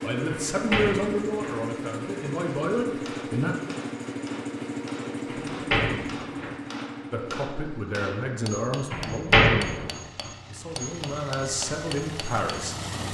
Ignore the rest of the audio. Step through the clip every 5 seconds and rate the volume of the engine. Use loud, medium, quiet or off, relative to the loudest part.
loud, loud, medium.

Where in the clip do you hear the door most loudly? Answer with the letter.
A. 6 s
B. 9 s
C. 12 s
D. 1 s
B.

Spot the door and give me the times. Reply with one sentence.
The door can be heard from 0.3 to 1.6 s, from 5.2 to 6.5 s and from 8.9 to 9.9 s.